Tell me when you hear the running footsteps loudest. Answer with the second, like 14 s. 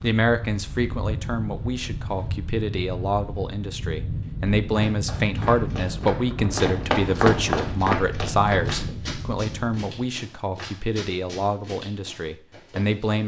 7 s.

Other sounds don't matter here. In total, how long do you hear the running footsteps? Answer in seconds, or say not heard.
9 s.